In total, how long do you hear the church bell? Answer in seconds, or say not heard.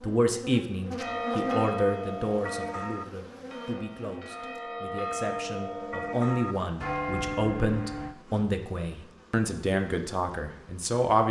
7 s.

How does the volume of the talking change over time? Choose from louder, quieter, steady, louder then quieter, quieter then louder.
quieter then louder.